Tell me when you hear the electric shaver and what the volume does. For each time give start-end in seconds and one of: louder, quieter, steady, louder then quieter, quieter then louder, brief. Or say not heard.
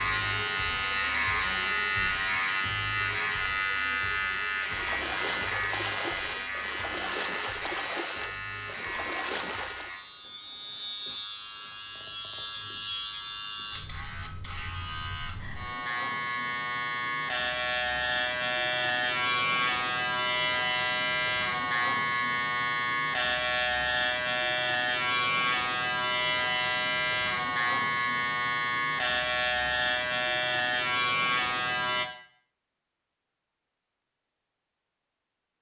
0.0-32.0 quieter then louder.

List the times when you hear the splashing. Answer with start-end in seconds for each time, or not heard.
4.6-9.9.